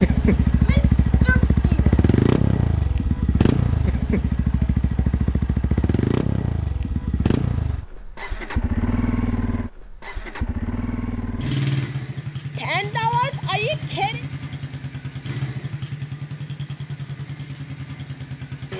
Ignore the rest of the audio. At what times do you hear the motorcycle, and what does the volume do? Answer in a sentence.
The motorcycle can be heard from 0.0 to 18.7 s, getting quieter.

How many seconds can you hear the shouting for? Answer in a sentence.
You can hear the shouting for 3 seconds altogether.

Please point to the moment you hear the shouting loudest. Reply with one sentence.
The volume of the shouting peaks at 13 seconds.